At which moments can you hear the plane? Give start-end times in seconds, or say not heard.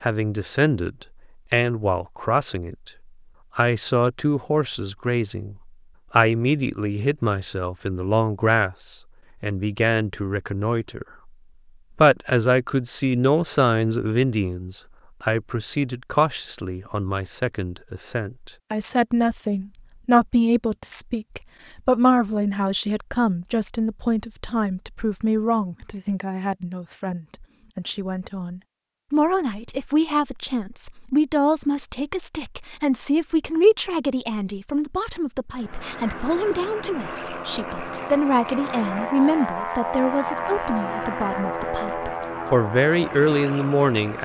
35.5-44.2.